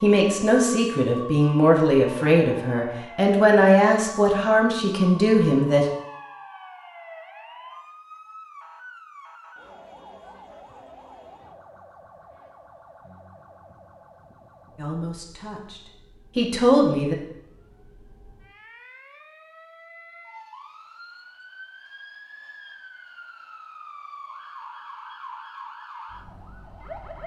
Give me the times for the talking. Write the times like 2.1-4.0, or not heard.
0.0-5.8, 14.8-17.1.